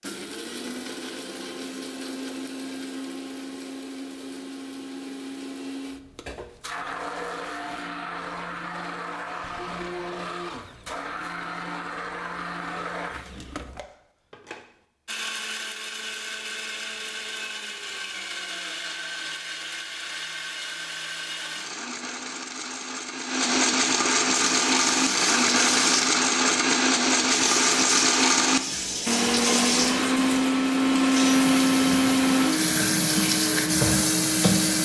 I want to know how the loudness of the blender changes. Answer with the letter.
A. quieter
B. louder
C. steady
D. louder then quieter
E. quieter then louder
B.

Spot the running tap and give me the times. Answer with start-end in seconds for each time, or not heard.
24.4-34.7.